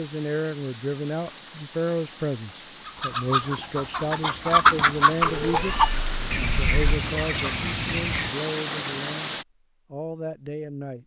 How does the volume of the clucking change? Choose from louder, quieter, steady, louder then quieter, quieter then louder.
louder then quieter.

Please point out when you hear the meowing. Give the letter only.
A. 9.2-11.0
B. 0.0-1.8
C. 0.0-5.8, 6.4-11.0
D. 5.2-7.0
D.